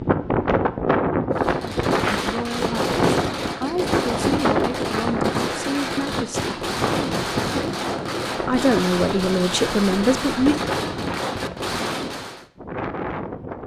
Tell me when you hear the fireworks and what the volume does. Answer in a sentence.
You can hear the fireworks from 1.3 to 12.4 s, at a steady volume.